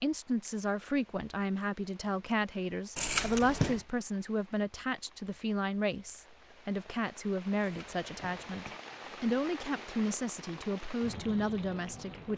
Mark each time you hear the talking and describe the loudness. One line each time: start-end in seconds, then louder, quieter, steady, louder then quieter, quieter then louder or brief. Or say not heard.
0.0-12.3 steady.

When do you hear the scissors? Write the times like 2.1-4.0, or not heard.
3.0-3.8, 7.5-8.8.